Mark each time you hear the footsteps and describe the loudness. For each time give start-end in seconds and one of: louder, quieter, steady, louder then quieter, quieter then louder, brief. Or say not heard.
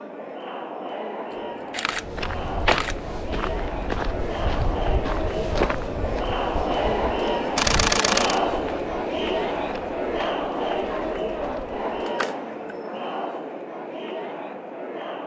1.9-11.9 quieter.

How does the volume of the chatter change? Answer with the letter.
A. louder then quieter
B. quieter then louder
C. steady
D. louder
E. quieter
A.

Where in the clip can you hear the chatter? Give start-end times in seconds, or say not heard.
0.0-15.2.